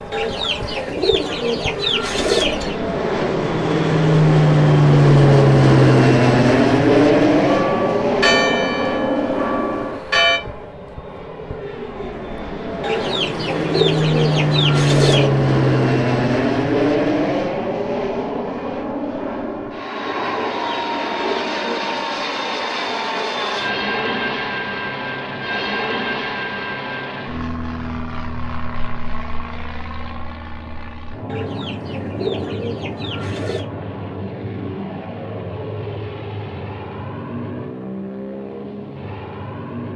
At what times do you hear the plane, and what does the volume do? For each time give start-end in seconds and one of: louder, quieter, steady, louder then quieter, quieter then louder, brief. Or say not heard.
0.0-39.9 quieter.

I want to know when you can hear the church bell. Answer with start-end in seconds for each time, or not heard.
7.5-10.4.